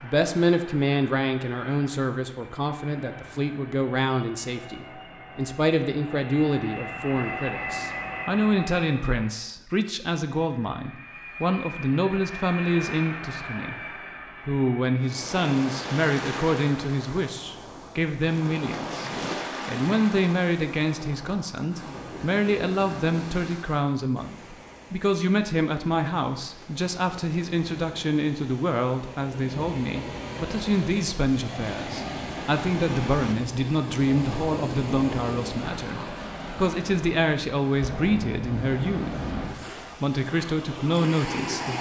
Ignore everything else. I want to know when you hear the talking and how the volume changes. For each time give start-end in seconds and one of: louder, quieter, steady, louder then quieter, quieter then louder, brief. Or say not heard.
0.0-13.8 steady
14.4-41.7 steady.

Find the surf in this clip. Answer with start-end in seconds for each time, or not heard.
15.0-41.7.